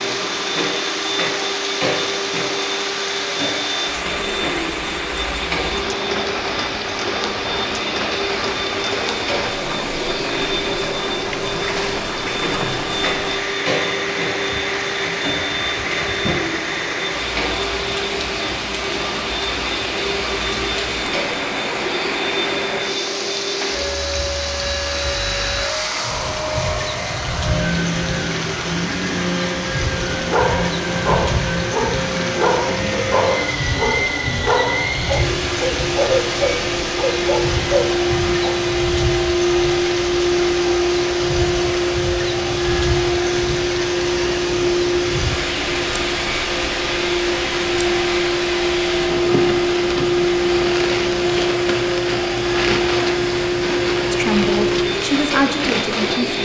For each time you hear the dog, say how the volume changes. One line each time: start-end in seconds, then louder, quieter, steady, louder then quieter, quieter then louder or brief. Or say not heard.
30.1-38.7 steady.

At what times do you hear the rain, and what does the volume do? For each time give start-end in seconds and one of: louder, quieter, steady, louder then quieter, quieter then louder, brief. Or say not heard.
0.0-56.3 steady.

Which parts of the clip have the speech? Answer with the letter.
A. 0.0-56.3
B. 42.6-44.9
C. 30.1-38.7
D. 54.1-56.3
D.